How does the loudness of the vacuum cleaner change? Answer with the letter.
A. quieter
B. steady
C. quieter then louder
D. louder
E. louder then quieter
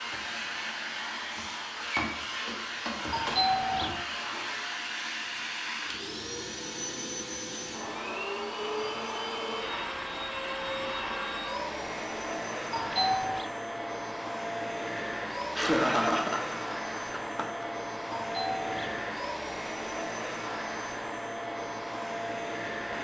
B.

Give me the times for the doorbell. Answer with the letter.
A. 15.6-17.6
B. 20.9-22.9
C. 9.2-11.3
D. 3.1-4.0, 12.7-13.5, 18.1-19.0
D.